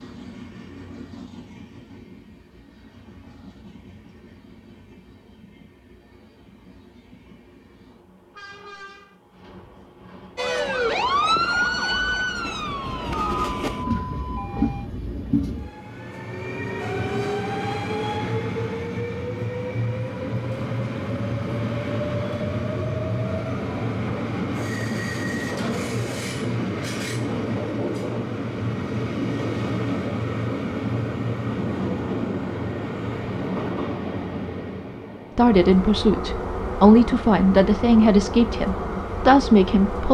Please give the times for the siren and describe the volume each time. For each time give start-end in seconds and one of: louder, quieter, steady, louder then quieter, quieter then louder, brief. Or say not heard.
10.3-14.9 quieter.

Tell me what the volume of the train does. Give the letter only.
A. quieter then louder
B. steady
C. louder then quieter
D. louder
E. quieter
D.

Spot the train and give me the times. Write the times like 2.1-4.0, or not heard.
0.0-40.0.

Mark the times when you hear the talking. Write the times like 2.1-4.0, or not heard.
35.4-40.0.